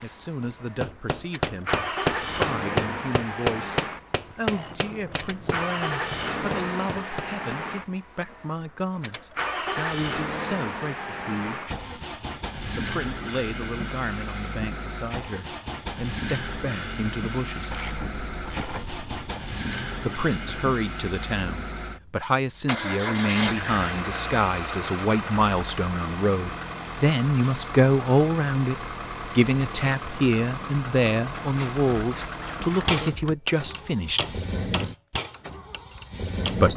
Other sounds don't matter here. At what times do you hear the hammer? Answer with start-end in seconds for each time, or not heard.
0.4-7.6, 32.9-36.6.